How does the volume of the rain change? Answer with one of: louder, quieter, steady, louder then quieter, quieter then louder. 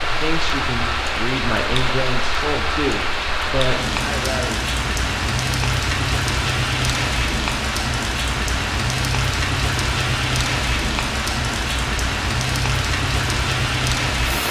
steady.